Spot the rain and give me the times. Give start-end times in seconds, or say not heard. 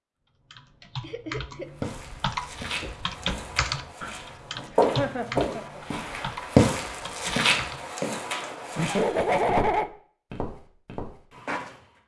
not heard.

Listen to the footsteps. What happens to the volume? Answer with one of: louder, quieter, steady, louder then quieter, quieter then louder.
louder then quieter.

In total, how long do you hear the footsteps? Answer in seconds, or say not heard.
10 s.